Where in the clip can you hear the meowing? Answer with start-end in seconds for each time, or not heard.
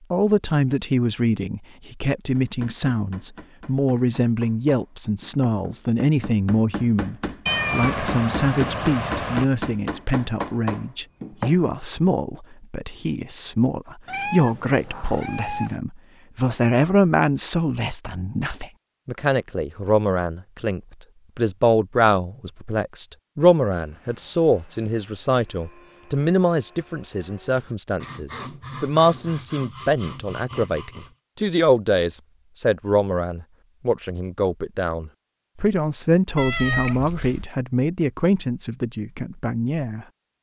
7.5-9.4, 14.1-15.8, 36.4-37.5.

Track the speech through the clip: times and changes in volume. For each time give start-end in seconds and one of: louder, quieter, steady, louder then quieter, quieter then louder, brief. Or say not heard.
0.1-40.0 steady.